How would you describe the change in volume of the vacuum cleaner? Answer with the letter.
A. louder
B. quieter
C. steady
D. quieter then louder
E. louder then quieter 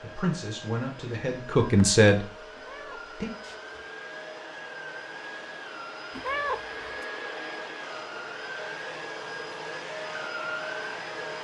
A.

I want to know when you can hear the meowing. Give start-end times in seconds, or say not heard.
2.5-3.8, 6.1-7.0.